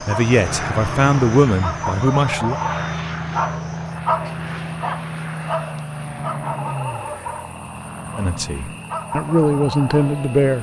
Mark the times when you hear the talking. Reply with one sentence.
The talking can be heard from 0.0 to 2.5 s and from 8.2 to 10.5 s.